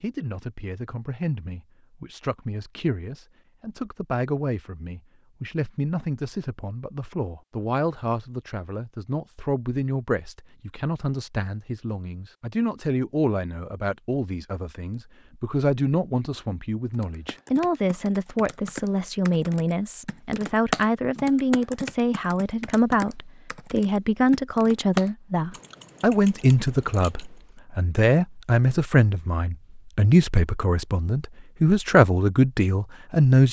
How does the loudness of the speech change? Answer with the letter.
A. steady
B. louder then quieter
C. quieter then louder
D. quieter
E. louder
E.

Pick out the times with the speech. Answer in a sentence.
You can hear the speech from 0.0 to 33.4 s.